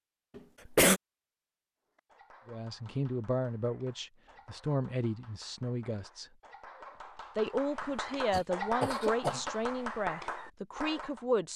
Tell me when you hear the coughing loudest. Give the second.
1 s.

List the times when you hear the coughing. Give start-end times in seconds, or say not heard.
0.3-1.0, 8.3-9.6.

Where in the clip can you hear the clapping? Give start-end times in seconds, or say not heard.
1.9-11.2.